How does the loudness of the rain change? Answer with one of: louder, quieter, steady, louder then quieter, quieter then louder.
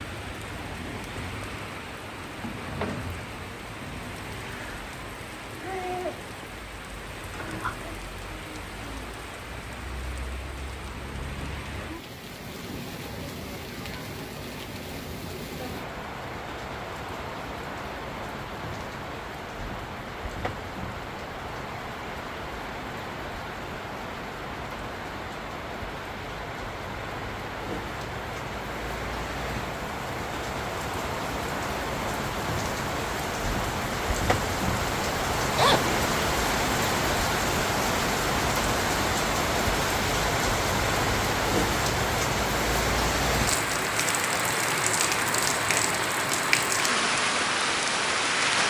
louder.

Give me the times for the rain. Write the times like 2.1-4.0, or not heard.
0.0-48.6.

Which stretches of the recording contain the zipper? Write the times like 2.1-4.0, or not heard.
35.5-36.2.